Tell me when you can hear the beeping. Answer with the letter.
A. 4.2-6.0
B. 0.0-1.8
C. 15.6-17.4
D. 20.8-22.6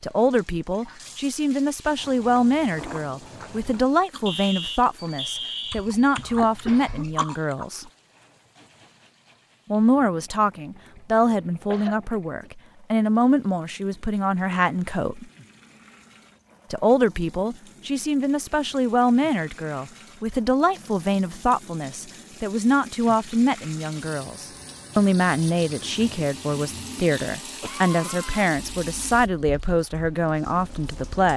A.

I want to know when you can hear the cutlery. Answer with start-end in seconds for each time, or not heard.
not heard.